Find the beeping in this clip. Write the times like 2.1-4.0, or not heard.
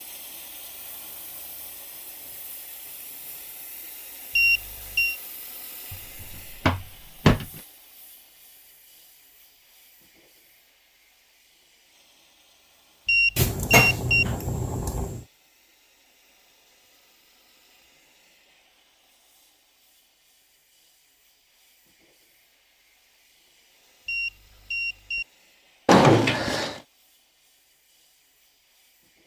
4.3-5.2, 13.1-14.2, 24.1-25.2.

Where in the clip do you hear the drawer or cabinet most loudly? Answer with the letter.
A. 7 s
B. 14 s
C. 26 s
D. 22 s
C.